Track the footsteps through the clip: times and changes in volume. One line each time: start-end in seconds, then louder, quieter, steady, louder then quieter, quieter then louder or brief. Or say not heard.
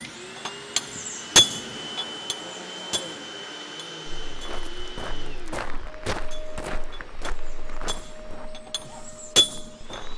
4.2-10.1 quieter.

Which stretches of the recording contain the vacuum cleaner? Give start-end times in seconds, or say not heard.
0.0-10.1.